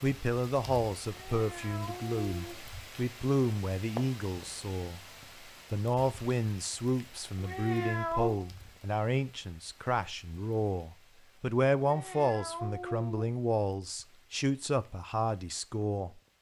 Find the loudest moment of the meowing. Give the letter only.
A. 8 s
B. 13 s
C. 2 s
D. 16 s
A.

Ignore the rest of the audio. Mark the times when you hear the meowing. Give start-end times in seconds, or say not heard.
1.1-2.6, 7.3-8.4, 11.8-13.3.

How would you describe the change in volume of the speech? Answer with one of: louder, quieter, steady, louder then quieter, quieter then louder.
steady.